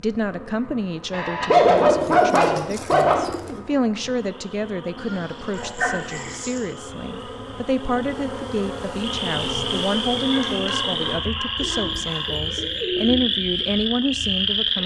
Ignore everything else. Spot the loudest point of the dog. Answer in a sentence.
The loudest moment of the dog is at 2 seconds.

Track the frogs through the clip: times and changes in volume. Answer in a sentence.
The frogs can be heard from 4.3 to 14.8 s, getting louder.